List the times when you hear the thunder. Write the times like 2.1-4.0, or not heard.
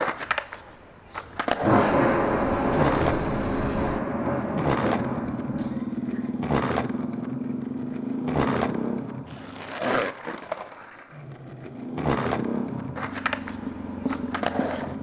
1.6-5.8.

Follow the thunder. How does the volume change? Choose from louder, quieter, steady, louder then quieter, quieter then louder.
quieter.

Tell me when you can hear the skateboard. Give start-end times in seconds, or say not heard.
0.0-14.9.